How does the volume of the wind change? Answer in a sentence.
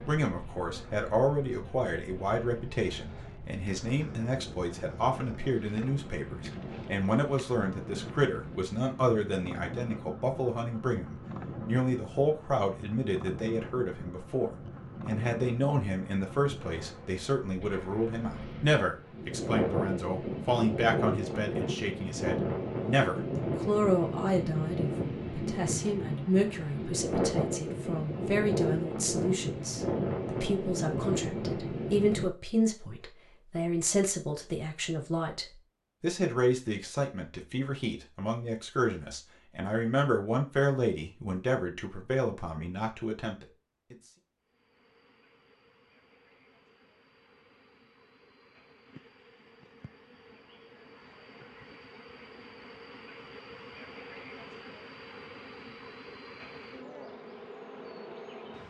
The volume of the wind goes up.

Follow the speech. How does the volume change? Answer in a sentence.
The volume of the speech stays about the same.